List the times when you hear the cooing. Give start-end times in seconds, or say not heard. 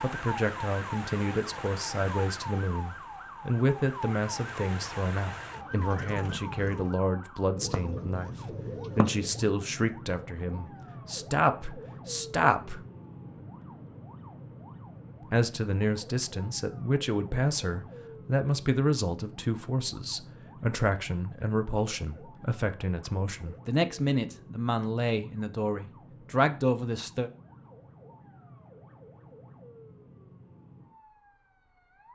7.5-9.6.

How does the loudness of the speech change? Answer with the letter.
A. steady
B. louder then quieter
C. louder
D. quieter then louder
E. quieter
A.